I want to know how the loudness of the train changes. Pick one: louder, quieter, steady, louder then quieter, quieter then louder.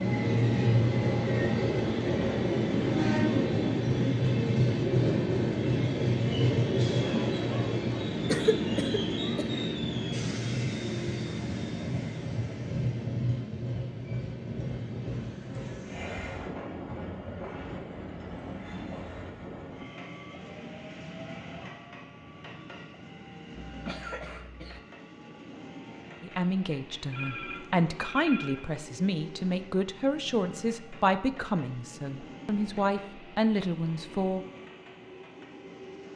quieter.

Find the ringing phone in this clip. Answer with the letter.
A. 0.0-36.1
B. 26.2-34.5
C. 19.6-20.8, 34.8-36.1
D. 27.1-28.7
D.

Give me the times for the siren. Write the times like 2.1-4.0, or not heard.
not heard.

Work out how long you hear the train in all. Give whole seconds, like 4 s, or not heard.
36 s.